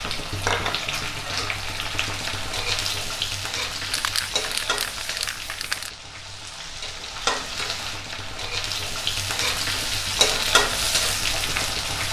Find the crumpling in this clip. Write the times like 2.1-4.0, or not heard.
3.9-5.9.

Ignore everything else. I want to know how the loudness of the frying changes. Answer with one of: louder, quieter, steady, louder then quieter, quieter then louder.
quieter then louder.